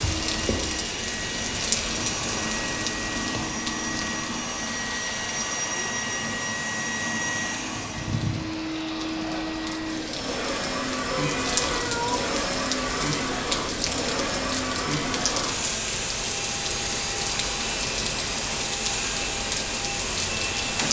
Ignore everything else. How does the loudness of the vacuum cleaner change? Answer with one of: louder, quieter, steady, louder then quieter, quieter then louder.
steady.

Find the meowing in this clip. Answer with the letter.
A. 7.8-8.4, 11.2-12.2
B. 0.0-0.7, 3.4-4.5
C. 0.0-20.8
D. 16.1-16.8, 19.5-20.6
A.